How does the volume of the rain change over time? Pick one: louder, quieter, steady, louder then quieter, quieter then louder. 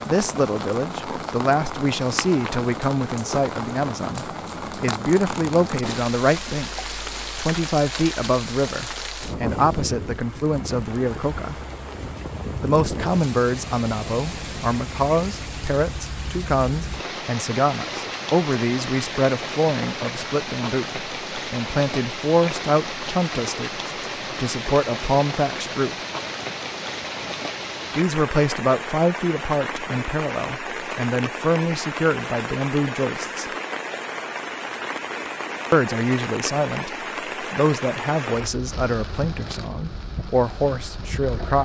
steady.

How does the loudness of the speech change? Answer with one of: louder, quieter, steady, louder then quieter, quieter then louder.
steady.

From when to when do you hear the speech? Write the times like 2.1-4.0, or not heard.
0.0-11.6, 12.6-25.9, 27.9-33.5, 35.7-41.6.